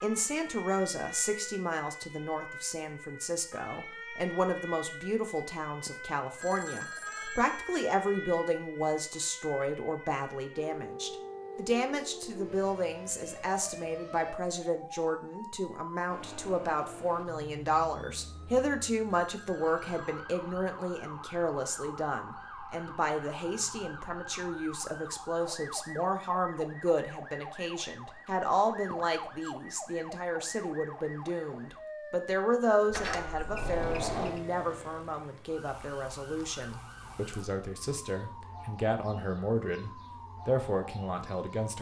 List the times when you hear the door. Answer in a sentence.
You can hear the door from 32.9 to 34.4 s.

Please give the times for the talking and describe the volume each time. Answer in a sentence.
You can hear the talking from 0.0 to 41.7 s, at a steady volume.